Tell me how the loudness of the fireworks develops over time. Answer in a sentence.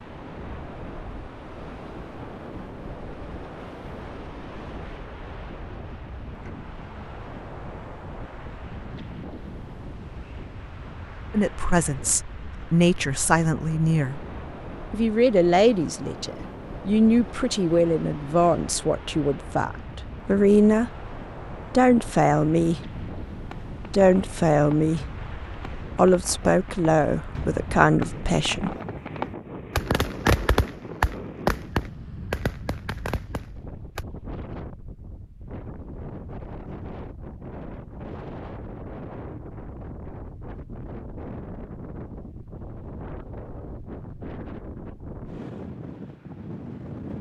The volume of the fireworks goes up, then down.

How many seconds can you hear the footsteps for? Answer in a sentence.
The footsteps can't be heard in this clip.